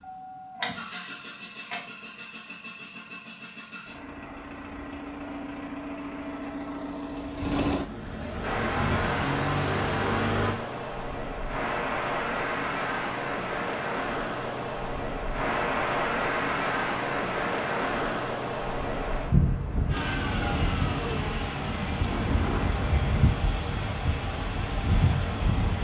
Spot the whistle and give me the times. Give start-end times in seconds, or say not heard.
not heard.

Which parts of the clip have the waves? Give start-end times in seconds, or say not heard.
8.4-25.7.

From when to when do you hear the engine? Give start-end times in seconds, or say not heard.
0.0-10.6, 19.9-25.7.